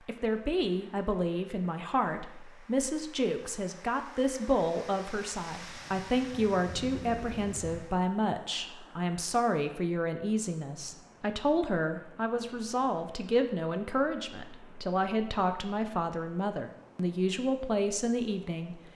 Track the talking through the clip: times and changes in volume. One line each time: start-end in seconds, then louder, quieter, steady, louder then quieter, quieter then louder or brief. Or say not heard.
0.1-18.8 steady.